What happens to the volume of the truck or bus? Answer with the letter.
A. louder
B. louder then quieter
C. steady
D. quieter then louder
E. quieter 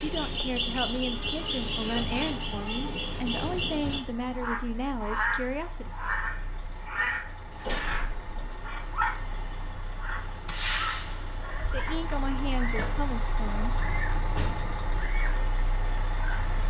A.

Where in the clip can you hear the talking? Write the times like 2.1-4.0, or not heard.
0.0-6.0, 11.6-13.8.